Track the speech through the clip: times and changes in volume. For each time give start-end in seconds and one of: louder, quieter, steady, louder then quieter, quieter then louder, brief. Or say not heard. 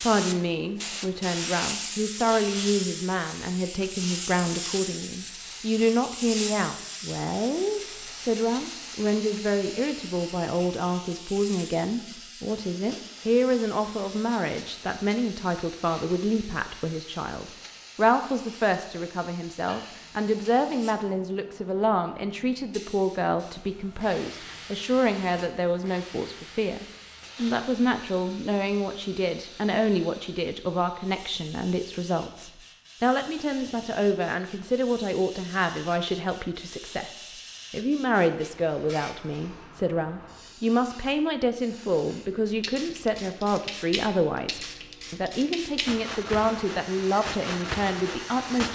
0.0-48.7 steady.